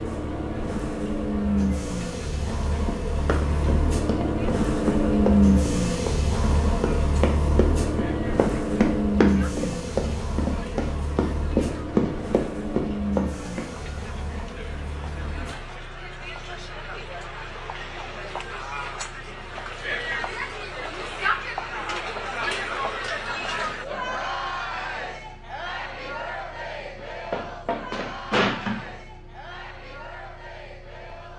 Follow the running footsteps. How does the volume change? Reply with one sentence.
The volume of the running footsteps goes up.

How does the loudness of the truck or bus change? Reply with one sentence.
The loudness of the truck or bus goes down.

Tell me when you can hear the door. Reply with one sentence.
You can hear the door from 27.3 to 28.9 s.